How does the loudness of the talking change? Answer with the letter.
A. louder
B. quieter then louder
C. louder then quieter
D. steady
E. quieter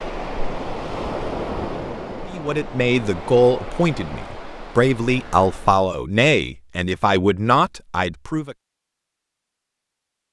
D.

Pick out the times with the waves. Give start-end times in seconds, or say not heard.
0.0-5.8.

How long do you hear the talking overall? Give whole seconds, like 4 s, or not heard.
6 s.